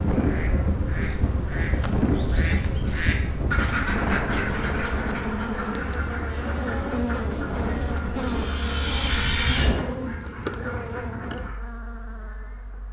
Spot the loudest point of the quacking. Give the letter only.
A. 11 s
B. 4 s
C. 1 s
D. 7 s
B.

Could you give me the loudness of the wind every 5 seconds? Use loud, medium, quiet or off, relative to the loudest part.
loud, loud, off.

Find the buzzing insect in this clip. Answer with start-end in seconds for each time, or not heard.
0.0-12.8.